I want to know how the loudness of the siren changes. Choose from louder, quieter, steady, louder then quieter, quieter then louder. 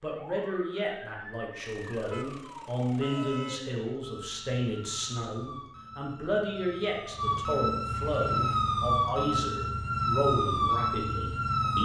louder.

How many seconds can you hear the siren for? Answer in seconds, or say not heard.
12 s.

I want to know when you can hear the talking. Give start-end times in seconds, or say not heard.
0.0-11.7.